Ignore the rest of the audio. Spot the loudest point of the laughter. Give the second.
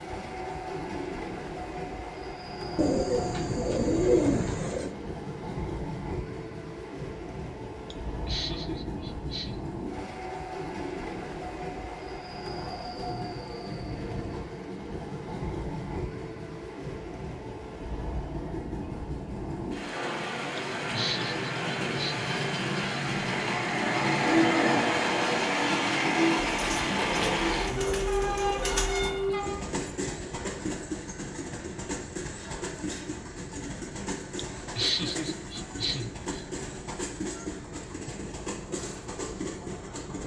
35 s.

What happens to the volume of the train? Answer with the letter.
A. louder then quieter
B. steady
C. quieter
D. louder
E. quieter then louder
A.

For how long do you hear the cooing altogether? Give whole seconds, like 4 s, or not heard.
5 s.